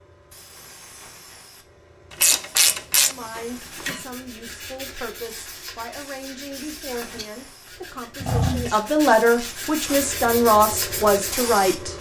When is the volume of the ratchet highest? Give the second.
3 s.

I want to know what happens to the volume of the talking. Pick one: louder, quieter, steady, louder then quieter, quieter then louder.
louder.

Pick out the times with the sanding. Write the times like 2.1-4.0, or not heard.
3.6-11.5.